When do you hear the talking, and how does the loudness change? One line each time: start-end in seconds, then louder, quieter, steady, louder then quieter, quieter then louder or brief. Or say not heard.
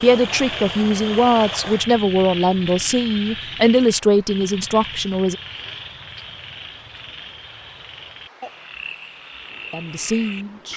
0.0-5.3 steady
9.7-10.7 brief.